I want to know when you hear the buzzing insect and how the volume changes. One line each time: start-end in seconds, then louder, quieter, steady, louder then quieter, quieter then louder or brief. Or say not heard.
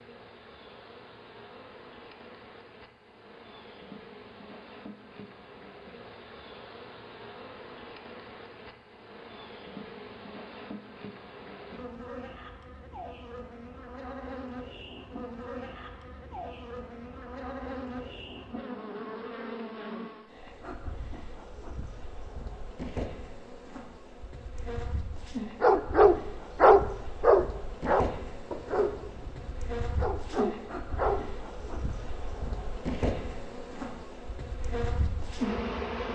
0.0-36.1 louder.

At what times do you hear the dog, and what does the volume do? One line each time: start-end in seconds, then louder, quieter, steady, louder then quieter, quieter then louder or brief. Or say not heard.
25.6-31.2 quieter then louder.